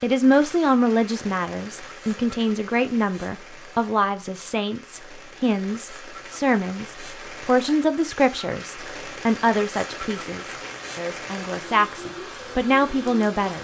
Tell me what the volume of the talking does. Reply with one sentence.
The volume of the talking stays about the same.